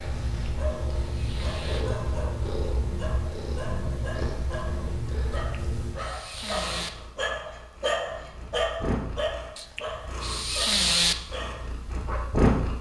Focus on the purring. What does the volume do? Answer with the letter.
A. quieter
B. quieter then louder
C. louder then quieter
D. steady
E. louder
A.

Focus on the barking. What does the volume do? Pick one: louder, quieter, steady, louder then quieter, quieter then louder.
louder then quieter.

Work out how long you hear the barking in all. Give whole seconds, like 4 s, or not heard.
12 s.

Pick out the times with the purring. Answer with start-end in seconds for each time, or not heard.
0.0-12.7.